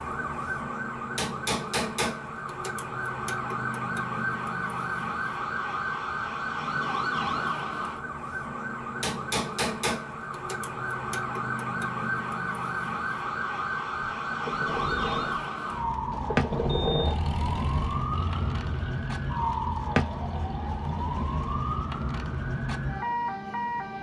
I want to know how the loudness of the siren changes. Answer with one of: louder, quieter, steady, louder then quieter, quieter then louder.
steady.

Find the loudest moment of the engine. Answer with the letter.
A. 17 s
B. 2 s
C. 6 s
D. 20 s
A.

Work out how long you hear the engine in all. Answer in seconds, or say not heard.
8 s.